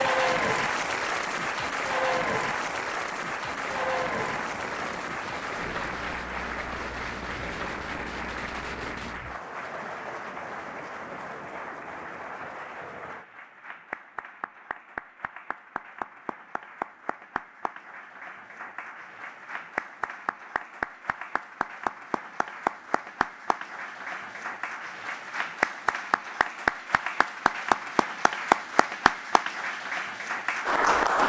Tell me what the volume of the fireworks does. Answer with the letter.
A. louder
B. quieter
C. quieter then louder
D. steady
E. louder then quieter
D.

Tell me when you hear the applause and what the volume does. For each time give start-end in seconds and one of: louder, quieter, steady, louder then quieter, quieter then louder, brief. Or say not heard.
0.0-31.2 quieter then louder.